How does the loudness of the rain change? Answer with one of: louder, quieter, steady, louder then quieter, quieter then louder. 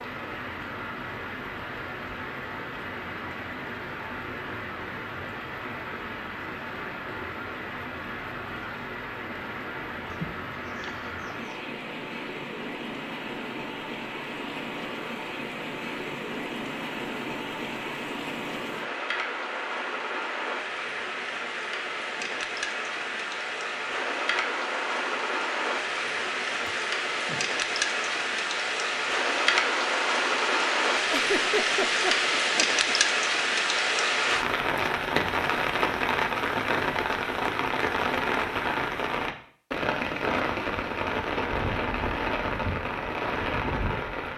louder.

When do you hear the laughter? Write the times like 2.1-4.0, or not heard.
10.1-11.6, 26.6-27.4, 31.1-33.0.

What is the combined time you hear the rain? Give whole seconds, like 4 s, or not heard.
44 s.